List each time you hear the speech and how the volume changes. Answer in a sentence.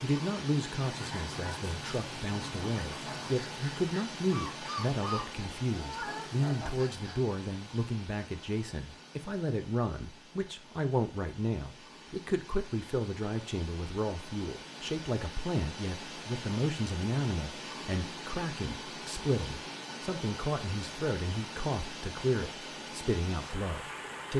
The speech can be heard from 0.0 to 24.3 s, at a steady volume.